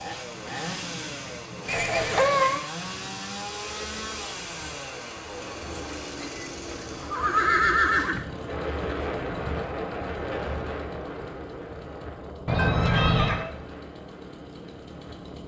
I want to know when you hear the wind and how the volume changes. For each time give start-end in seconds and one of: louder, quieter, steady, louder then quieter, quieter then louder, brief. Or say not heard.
0.0-15.4 louder then quieter.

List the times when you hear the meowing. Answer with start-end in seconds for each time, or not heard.
12.6-13.6.